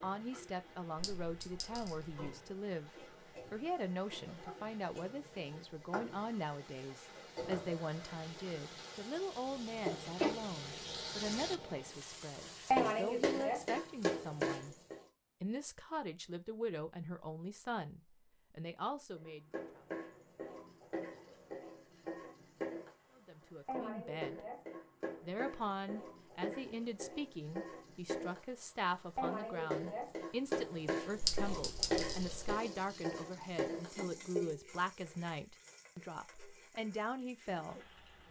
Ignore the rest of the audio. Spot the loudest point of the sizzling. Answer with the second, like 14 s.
13 s.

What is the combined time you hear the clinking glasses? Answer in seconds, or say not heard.
3 s.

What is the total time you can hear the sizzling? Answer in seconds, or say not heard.
34 s.